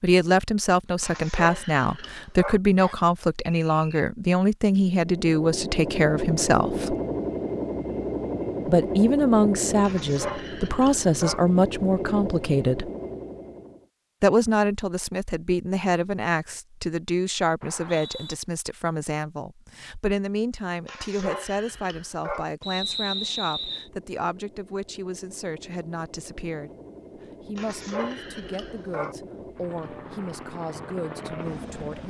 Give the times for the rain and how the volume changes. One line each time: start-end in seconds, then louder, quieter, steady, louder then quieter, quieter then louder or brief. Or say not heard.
not heard.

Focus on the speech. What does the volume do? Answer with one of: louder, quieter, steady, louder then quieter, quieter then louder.
quieter.